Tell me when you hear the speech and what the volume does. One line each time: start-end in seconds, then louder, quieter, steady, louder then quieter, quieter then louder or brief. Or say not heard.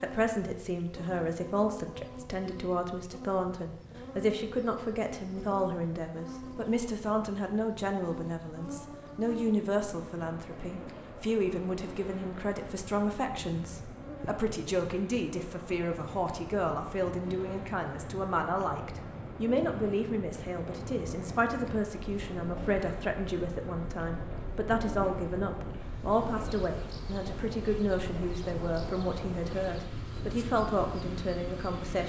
0.0-32.0 steady.